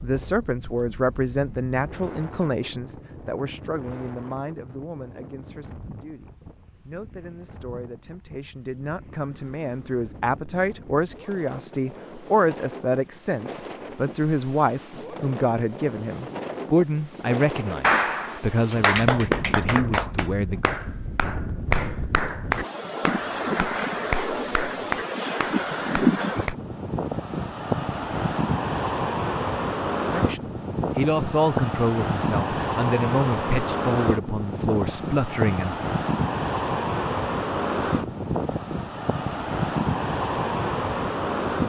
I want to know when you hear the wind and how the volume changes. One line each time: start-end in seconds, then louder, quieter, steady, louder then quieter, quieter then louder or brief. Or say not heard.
0.0-41.6 louder.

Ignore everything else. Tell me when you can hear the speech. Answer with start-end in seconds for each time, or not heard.
0.0-20.7, 30.1-35.8.